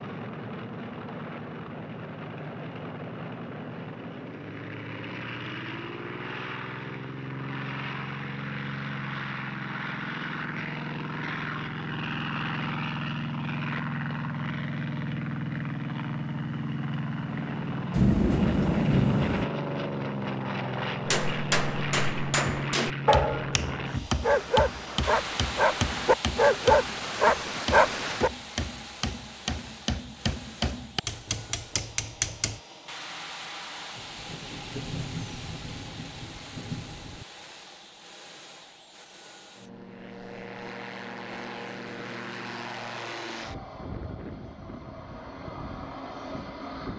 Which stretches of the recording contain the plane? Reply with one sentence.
The plane can be heard from 0.0 to 46.9 s.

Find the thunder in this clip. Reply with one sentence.
You can hear the thunder from 17.9 to 19.4 s and from 34.0 to 37.2 s.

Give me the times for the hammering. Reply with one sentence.
The hammering can be heard from 21.1 to 32.6 s.